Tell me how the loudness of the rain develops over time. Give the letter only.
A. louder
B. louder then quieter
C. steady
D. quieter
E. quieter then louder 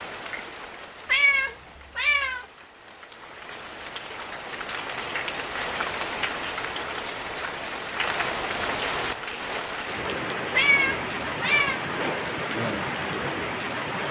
A.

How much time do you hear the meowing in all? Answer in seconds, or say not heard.
3 s.